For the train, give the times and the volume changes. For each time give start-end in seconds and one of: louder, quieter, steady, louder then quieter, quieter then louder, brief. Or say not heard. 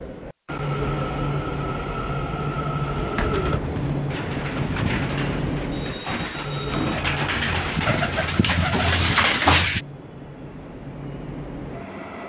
0.0-12.2 quieter.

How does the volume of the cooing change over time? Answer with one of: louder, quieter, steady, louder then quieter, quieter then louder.
louder.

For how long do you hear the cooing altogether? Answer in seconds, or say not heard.
7 s.